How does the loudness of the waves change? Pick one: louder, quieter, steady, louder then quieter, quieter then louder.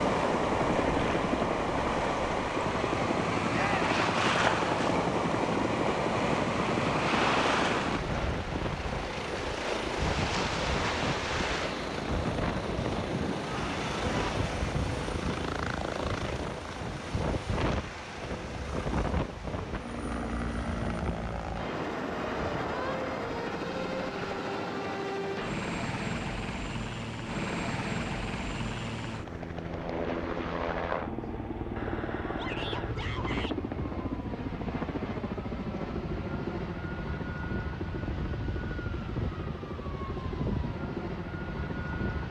quieter.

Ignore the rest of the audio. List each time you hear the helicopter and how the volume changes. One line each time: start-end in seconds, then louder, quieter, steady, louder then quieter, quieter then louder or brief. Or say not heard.
0.0-42.2 steady.